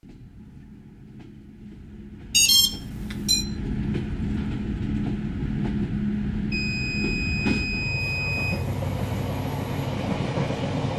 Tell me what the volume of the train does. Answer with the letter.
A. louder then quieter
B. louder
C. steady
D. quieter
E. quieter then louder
B.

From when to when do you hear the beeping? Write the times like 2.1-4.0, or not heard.
2.3-3.5, 6.5-8.6.